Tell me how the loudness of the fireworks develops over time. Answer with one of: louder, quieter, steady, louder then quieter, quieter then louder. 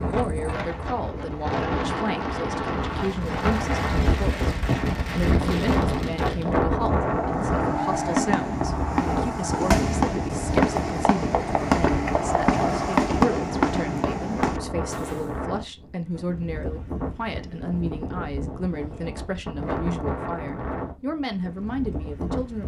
louder.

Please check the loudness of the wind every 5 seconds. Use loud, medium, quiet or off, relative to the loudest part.
loud, loud, medium, medium, medium.